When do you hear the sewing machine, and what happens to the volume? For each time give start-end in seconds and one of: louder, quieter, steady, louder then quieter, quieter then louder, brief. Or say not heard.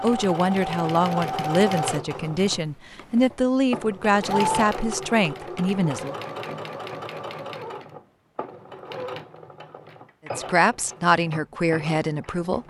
0.0-12.6 quieter.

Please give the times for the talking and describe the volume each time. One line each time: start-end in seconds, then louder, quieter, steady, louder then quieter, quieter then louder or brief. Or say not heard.
0.0-6.2 steady
10.2-12.6 brief.